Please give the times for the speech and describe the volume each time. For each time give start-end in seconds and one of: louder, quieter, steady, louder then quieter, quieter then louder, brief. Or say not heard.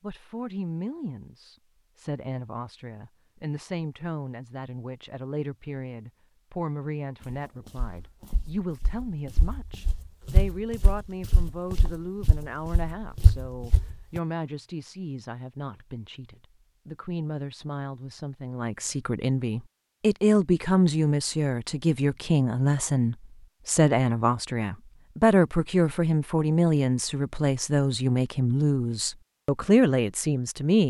0.0-30.8 louder.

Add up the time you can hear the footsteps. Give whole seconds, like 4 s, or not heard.
7 s.